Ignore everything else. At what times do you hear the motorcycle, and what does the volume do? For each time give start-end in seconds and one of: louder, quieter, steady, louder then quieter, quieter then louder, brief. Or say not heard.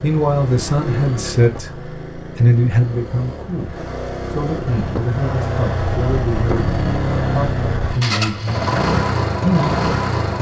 0.0-10.3 louder.